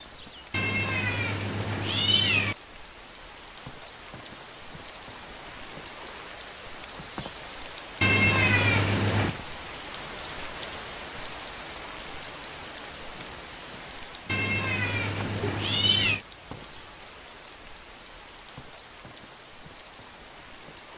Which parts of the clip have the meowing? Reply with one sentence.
The meowing can be heard from 0.5 to 2.5 s, from 8.0 to 9.3 s and from 14.2 to 16.2 s.